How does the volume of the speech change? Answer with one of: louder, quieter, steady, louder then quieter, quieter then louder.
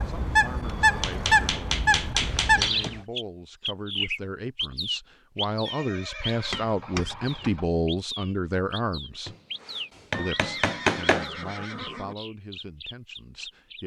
louder then quieter.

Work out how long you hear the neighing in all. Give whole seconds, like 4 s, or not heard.
5 s.